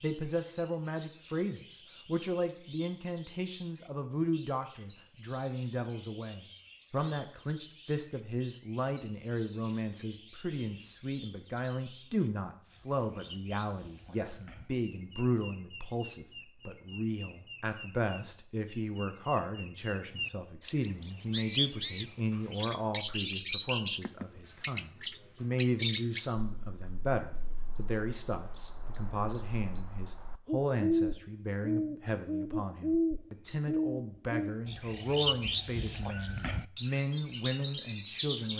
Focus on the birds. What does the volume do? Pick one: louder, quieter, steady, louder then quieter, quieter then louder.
louder.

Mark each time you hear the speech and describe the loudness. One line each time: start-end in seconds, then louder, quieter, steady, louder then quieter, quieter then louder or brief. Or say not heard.
0.0-38.5 steady.